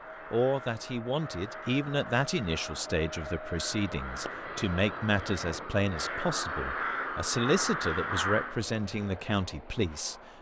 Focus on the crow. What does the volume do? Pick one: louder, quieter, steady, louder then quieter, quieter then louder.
louder.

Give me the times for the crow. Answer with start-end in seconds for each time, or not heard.
0.0-8.6.